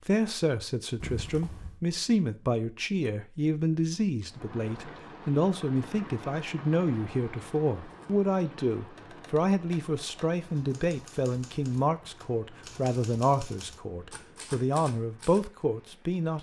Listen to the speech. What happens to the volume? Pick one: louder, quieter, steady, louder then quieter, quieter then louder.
steady.